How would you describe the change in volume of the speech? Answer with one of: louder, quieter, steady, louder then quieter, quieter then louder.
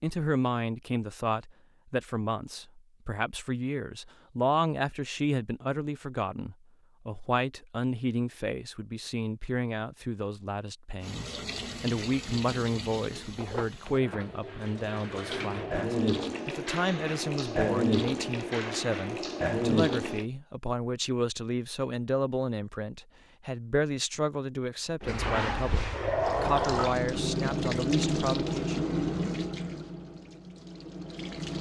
steady.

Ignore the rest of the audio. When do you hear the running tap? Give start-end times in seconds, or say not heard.
11.0-20.2, 25.0-31.5.